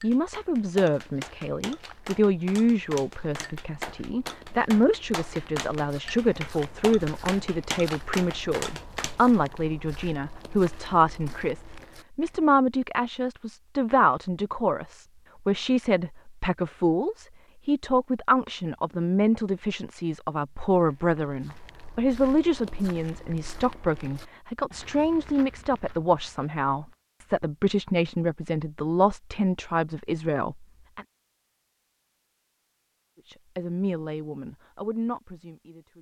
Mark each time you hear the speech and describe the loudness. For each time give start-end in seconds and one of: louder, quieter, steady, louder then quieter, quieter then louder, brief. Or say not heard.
0.0-31.1 steady
33.2-35.9 brief.